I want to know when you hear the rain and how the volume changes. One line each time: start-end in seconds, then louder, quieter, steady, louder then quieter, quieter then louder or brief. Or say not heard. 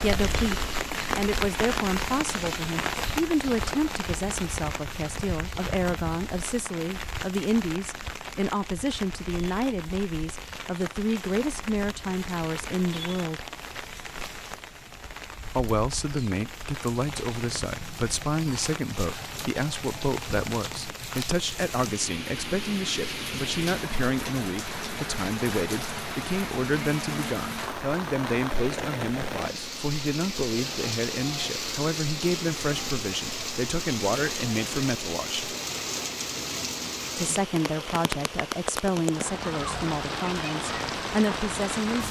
0.0-42.0 quieter then louder.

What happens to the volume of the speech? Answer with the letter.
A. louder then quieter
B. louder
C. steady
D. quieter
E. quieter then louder
C.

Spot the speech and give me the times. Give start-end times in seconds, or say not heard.
0.0-13.4, 15.6-35.5, 37.1-42.0.